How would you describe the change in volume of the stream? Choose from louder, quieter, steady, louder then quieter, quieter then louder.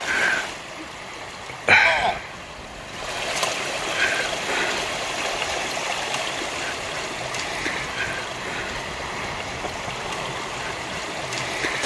quieter.